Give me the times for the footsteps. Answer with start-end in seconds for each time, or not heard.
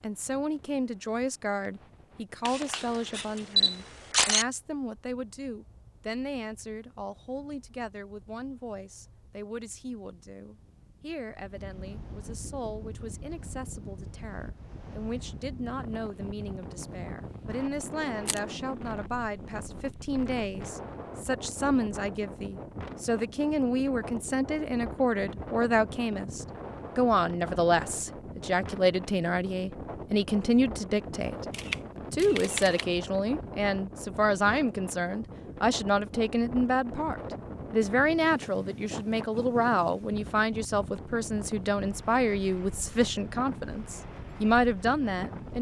not heard.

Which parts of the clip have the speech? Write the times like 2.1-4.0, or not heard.
0.0-45.5.